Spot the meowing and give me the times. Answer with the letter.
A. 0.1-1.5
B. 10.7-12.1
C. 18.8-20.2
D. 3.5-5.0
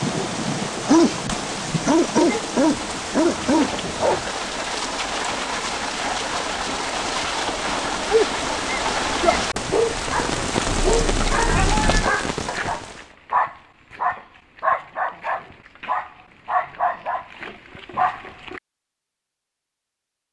B.